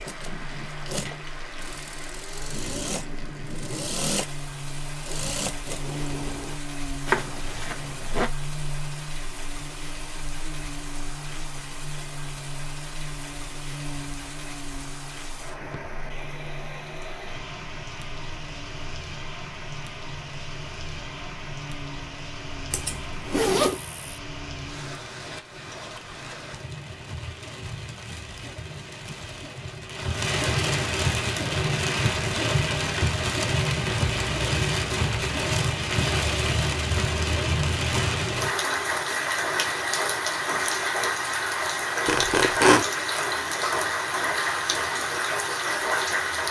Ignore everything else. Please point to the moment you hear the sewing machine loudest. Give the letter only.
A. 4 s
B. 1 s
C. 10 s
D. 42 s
A.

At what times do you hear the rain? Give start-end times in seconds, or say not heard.
0.0-46.4.